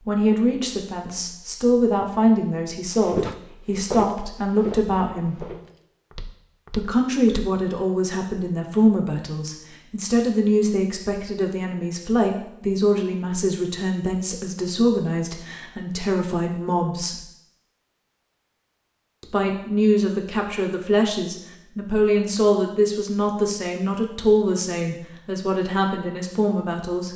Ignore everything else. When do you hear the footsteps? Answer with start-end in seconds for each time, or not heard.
2.9-7.5.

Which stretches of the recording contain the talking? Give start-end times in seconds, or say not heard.
0.1-5.5, 6.7-17.1, 19.2-27.1.